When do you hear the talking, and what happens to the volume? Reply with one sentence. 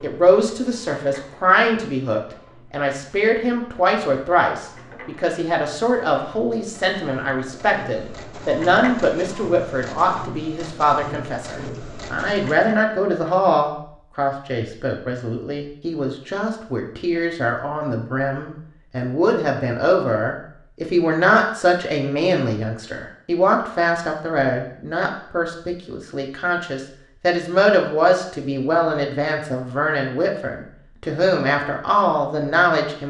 The talking can be heard from 0.0 to 33.0 s, at a steady volume.